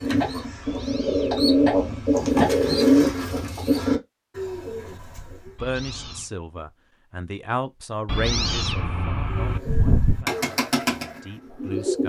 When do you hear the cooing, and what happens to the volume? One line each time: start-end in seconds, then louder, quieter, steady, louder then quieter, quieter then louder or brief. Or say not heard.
0.0-5.5 louder then quieter
9.3-12.0 brief.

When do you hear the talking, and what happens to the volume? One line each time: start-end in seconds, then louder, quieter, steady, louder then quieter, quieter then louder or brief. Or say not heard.
5.5-12.0 louder then quieter.